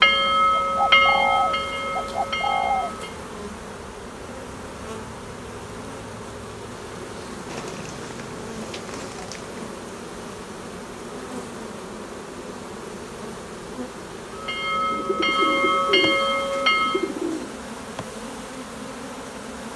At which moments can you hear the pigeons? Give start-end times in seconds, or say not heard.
0.6-3.0, 7.5-9.6, 14.9-17.6.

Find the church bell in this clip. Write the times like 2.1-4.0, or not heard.
0.0-3.1, 14.3-17.1.